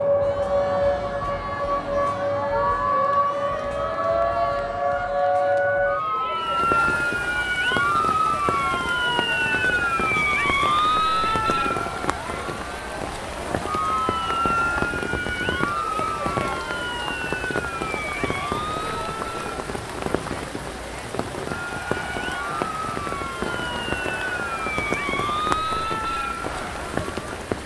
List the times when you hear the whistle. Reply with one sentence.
You can't hear the whistle here.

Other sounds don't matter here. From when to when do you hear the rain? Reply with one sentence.
The rain can be heard from 6.4 to 27.6 s.